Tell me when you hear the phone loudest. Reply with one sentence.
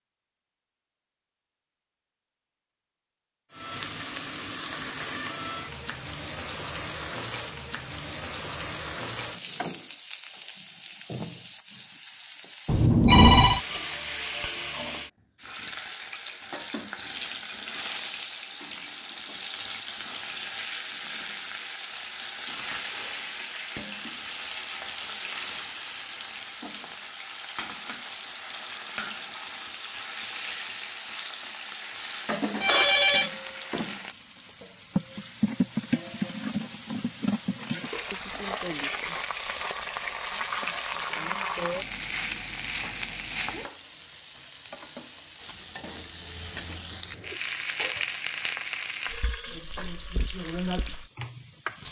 The loudest moment of the phone is at 13 seconds.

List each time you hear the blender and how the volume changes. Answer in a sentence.
The blender can't be heard in this clip.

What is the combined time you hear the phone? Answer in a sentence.
The phone can be heard for 2 seconds in total.